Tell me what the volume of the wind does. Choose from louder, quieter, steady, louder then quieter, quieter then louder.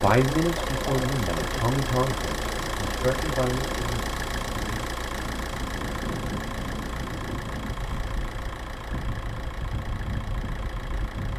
steady.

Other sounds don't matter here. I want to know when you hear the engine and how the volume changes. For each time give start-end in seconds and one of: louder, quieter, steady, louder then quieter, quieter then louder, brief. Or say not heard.
0.0-11.3 quieter.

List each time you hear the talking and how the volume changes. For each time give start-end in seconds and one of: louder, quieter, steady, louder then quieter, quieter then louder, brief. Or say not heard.
0.0-4.8 quieter.